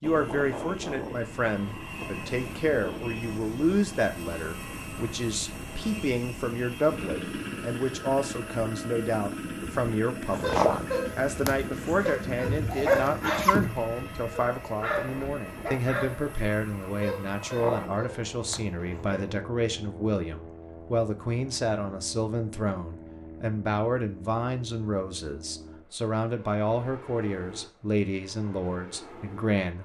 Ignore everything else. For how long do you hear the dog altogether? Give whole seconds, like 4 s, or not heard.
9 s.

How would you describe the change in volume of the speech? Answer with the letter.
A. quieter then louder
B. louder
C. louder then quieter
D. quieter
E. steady
E.